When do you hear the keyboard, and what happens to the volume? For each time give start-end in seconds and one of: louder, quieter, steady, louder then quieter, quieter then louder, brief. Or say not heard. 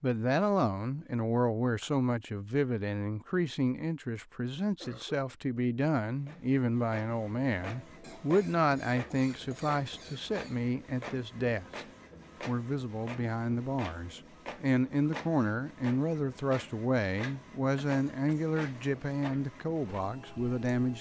not heard.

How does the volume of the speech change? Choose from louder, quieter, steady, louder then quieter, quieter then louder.
steady.